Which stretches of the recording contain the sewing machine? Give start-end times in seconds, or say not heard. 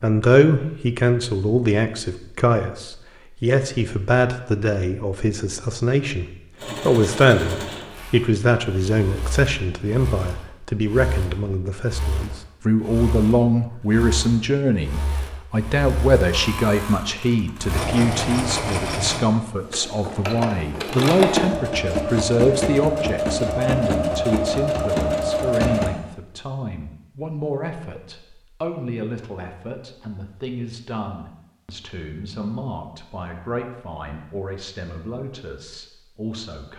6.5-25.9.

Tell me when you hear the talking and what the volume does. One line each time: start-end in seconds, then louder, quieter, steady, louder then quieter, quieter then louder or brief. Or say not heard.
0.0-36.7 quieter.